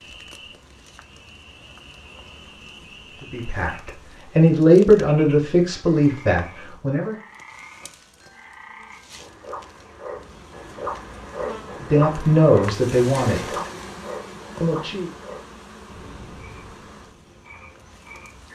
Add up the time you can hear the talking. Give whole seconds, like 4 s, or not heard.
6 s.